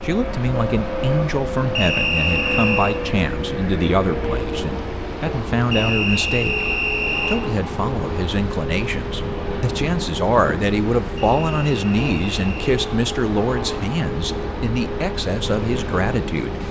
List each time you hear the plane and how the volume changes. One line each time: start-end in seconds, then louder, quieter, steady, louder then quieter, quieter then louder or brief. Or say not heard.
0.0-16.6 steady.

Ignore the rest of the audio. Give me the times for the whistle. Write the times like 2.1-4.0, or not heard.
1.8-3.0, 5.7-7.4, 11.2-12.7.